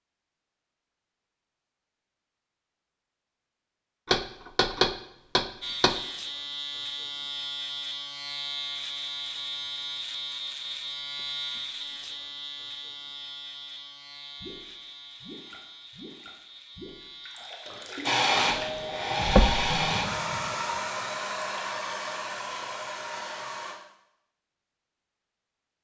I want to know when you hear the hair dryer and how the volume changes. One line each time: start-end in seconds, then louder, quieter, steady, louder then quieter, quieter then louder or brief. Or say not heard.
18.0-23.8 quieter.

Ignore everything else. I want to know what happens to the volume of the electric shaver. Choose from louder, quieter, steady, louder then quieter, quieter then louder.
quieter.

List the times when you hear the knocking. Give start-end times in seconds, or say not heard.
4.0-6.0, 19.2-19.7.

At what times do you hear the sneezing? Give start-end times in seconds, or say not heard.
not heard.